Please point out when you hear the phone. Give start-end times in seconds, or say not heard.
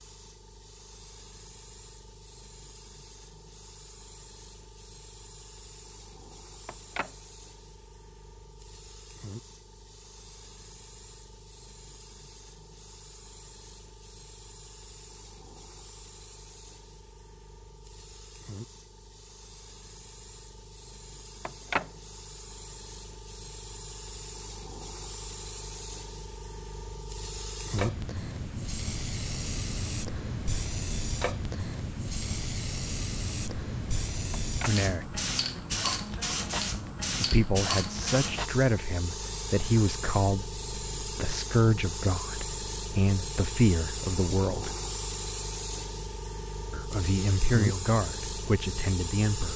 6.7-7.1, 21.4-21.9, 34.3-34.8.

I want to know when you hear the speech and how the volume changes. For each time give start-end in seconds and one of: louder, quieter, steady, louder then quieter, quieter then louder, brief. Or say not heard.
34.6-35.2 brief
37.2-44.7 steady
46.7-49.5 brief.